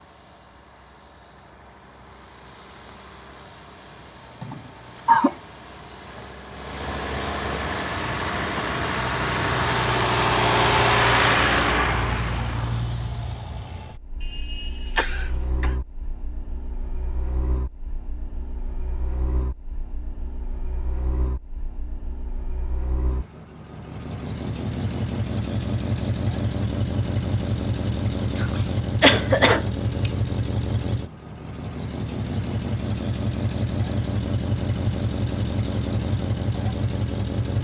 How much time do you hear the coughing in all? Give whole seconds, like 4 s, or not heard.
4 s.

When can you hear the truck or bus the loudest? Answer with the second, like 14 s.
11 s.